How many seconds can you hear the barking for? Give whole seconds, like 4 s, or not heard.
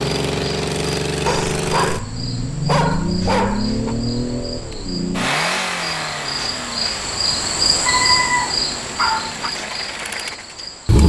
4 s.